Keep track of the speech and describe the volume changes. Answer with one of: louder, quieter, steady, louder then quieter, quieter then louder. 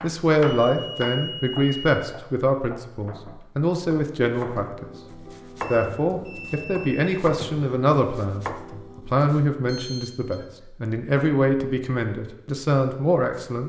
steady.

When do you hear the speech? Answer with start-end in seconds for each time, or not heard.
0.0-4.9, 5.7-13.6.